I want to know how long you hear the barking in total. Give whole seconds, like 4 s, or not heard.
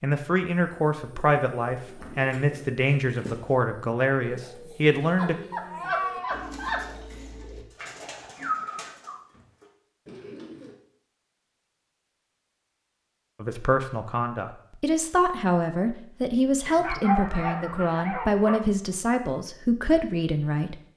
4 s.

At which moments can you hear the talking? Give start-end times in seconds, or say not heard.
0.0-5.3, 13.4-20.8.